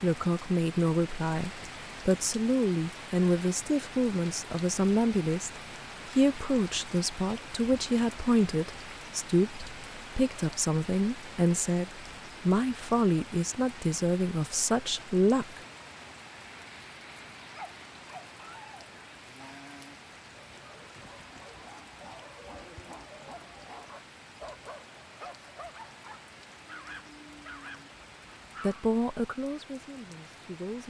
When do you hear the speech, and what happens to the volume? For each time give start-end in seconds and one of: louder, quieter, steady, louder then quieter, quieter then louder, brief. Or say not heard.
0.0-15.6 steady
28.6-30.8 brief.